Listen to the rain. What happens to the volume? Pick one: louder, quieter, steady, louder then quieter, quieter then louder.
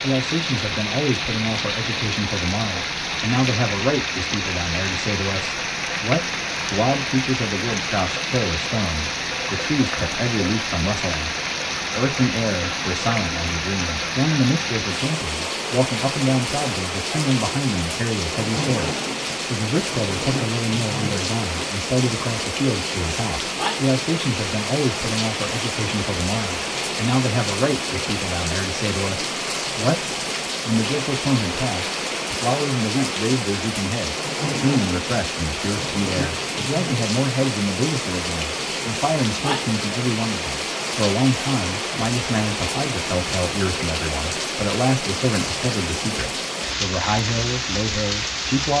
steady.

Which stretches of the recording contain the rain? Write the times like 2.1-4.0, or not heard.
0.0-48.7.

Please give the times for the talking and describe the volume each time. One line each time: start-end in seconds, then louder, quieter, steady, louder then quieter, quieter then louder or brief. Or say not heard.
0.0-48.7 steady.